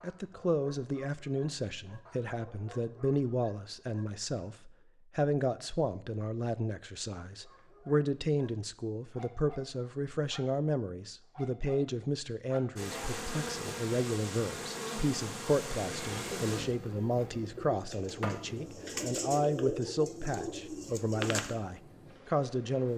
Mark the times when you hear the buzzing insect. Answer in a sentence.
The buzzing insect can be heard from 12.8 to 22.9 s.